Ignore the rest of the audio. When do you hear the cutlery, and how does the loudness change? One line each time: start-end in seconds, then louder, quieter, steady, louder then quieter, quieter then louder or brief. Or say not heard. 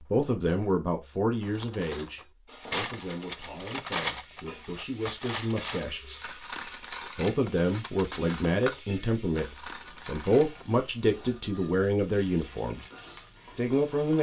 0.1-10.8 louder then quieter.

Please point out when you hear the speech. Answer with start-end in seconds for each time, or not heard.
0.0-6.3, 7.2-12.8, 13.6-14.1.